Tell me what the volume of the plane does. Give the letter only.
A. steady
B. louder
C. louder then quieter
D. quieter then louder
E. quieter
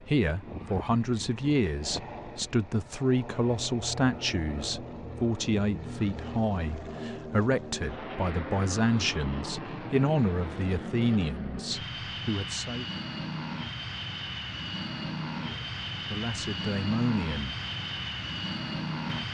B.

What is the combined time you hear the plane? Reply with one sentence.
You can hear the plane for 19 seconds altogether.